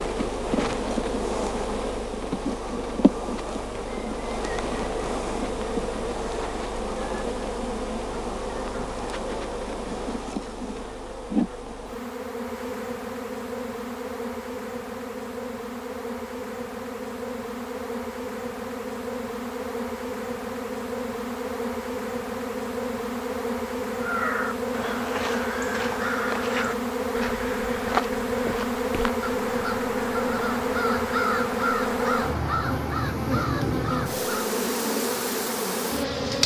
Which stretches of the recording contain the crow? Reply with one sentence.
The crow can be heard from 24.0 to 34.5 s.